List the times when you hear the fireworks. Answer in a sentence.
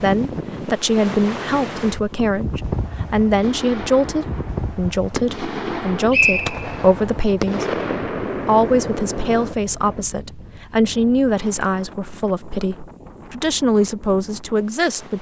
The fireworks can be heard from 3.4 to 10.1 s.